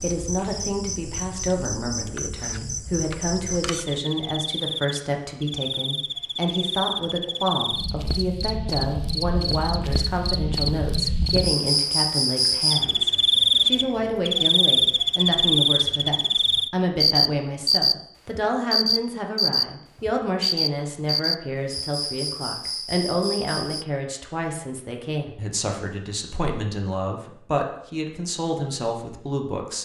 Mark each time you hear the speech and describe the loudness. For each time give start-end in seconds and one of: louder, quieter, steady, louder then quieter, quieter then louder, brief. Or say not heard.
0.0-29.8 steady.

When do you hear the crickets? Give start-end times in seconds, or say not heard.
0.0-23.9.